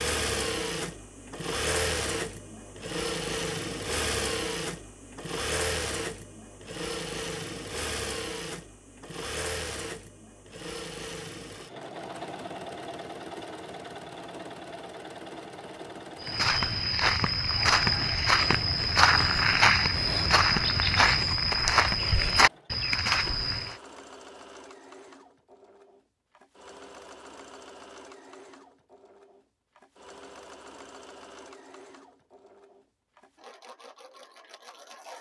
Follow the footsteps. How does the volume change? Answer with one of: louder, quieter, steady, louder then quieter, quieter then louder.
steady.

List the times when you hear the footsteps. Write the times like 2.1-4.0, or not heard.
16.2-23.8.